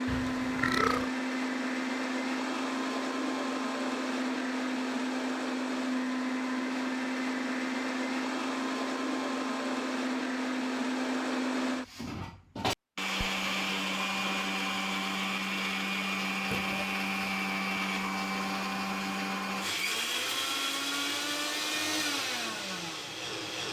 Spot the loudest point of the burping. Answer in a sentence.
The volume of the burping peaks at 1 second.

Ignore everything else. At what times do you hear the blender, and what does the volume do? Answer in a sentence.
You can hear the blender from 0.0 to 23.6 s, at a steady volume.